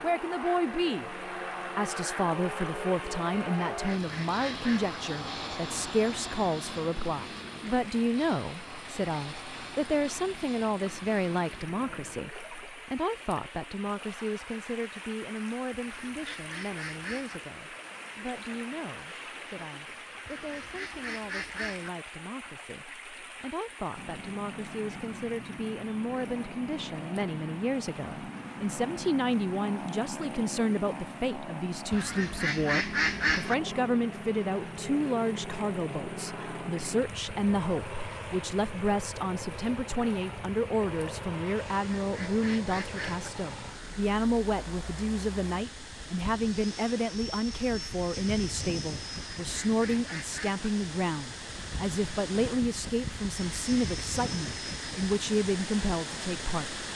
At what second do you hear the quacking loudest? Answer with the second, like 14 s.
33 s.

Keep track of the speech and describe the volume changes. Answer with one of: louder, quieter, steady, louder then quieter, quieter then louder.
quieter then louder.